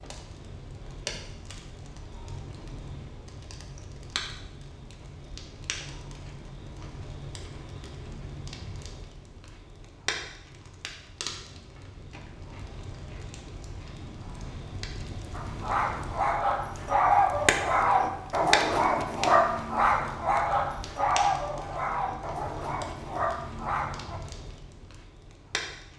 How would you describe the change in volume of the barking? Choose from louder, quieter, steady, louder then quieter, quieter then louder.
quieter.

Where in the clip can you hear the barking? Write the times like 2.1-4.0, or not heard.
15.3-24.2.